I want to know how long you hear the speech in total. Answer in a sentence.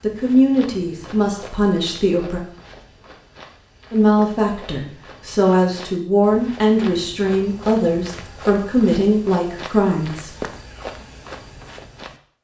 You can hear the speech for 9 seconds altogether.